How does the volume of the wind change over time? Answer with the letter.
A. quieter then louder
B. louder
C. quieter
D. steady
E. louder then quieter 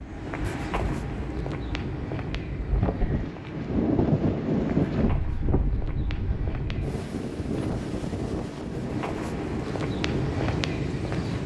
E.